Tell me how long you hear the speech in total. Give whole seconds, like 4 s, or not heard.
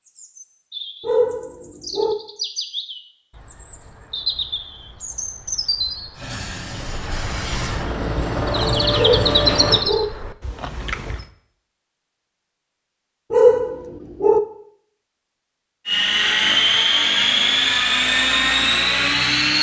not heard.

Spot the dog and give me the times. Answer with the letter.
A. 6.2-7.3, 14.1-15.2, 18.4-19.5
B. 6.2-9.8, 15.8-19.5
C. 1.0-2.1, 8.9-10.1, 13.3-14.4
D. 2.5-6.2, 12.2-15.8
C.